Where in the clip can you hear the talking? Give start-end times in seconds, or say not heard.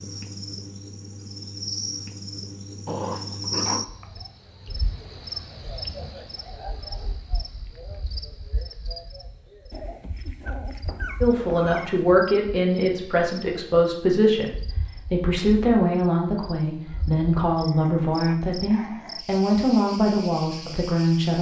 11.2-14.5, 15.1-21.3.